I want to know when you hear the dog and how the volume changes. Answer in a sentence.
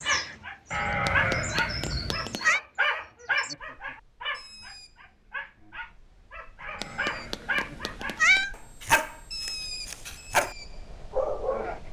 You can hear the dog from 0.1 to 11.8 s, getting quieter then louder.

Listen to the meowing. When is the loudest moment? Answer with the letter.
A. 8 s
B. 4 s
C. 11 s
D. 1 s
A.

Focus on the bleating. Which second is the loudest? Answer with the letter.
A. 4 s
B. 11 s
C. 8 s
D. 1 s
D.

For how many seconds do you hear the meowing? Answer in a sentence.
The meowing can be heard for 3 seconds in total.